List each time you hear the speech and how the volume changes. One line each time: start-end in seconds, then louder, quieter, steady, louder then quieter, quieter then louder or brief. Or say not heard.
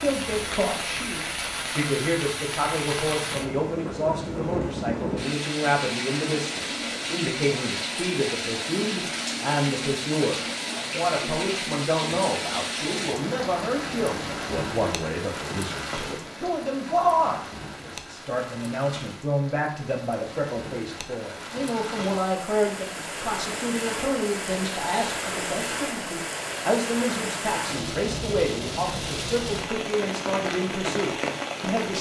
0.0-31.9 steady.